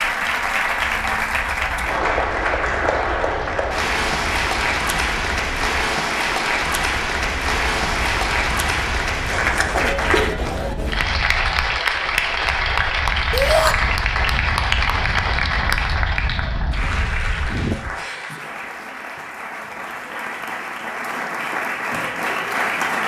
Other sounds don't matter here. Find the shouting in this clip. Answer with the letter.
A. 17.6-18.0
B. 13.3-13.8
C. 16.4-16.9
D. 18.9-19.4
B.